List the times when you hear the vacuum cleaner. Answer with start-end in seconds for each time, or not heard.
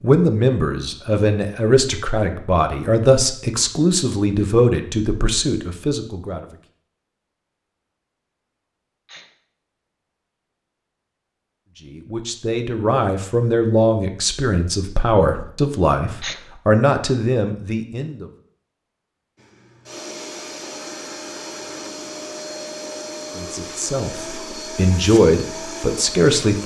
19.4-26.6.